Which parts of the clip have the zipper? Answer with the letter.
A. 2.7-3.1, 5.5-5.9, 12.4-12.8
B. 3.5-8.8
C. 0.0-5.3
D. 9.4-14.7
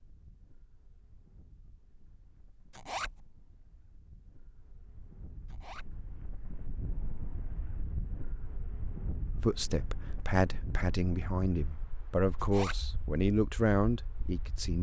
A.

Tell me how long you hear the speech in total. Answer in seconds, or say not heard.
5 s.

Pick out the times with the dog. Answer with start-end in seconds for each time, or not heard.
not heard.